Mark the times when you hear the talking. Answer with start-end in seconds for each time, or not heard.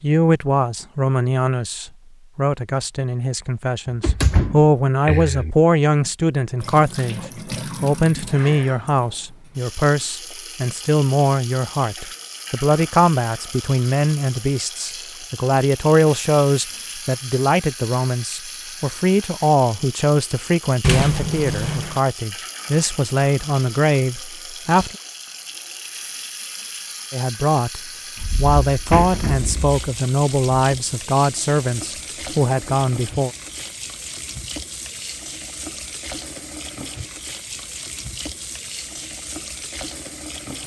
0.0-7.2, 7.8-24.9, 27.1-33.3.